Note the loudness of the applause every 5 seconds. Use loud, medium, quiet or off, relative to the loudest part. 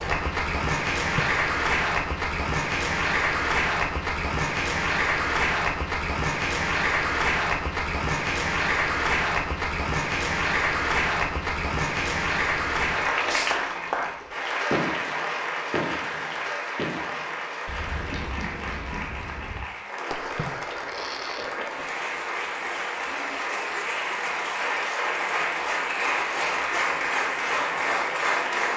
loud, loud, loud, medium, medium, loud.